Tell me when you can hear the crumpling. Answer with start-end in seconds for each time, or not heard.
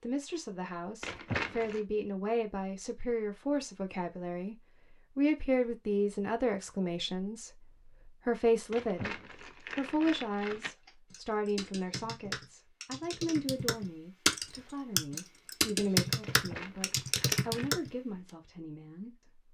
1.0-1.8, 8.7-10.8, 16.2-17.8.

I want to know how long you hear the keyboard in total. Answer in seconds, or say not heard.
7 s.